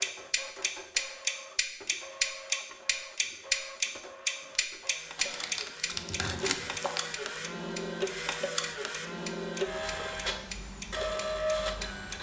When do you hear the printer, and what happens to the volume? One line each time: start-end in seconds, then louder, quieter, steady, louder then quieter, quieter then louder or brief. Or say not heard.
0.0-12.1 louder.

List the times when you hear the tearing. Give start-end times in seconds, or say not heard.
5.2-7.0.